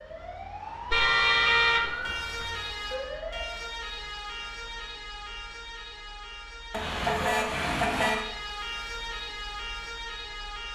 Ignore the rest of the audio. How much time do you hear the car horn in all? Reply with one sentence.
The car horn can be heard for 3 seconds in total.